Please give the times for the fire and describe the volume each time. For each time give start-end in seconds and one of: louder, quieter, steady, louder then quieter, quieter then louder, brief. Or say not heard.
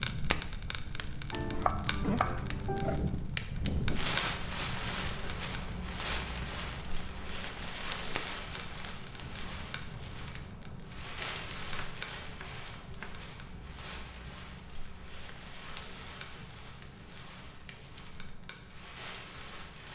0.0-19.9 quieter.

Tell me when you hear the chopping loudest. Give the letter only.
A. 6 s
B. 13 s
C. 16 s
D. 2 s
D.